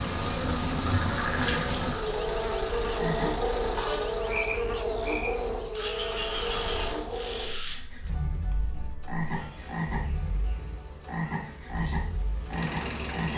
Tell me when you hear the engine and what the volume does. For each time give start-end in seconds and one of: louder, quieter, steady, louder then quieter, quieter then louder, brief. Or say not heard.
0.1-4.2 steady
6.2-13.3 quieter then louder.